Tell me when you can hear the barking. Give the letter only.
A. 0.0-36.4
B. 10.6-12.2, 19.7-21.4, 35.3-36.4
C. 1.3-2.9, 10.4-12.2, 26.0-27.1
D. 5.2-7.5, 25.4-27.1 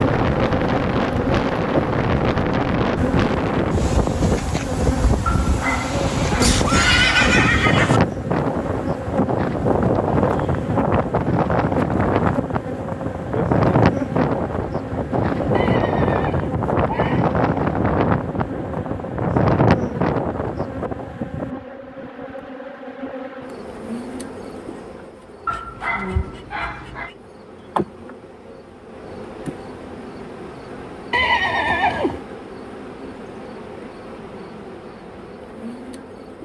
D.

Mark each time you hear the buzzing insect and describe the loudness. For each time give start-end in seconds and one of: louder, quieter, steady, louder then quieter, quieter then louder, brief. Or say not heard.
0.0-36.4 quieter.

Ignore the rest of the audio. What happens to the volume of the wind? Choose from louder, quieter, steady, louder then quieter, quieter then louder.
steady.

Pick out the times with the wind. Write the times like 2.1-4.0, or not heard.
0.0-21.1.